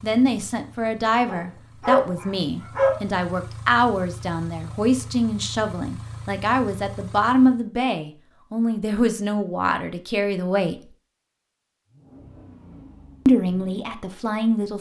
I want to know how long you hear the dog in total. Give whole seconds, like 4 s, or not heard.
2 s.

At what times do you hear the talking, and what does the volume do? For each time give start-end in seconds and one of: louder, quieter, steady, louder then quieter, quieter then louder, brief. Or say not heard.
0.0-10.8 steady
13.2-14.7 brief.